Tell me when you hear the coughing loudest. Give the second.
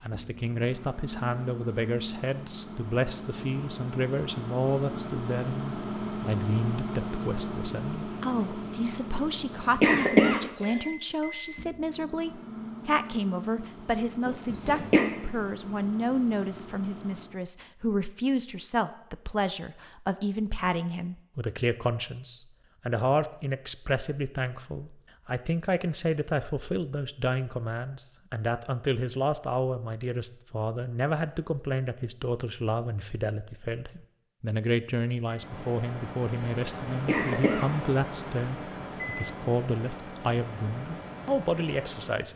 10 s.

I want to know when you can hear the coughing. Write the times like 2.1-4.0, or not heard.
9.8-10.8, 14.2-15.1, 37.0-38.0.